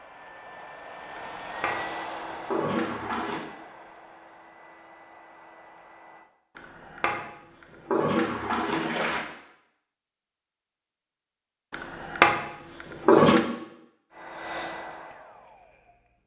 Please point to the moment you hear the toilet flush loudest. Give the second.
13 s.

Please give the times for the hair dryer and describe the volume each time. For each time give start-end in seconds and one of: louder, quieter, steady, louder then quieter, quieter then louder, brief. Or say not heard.
0.0-6.3 louder then quieter
14.1-16.2 brief.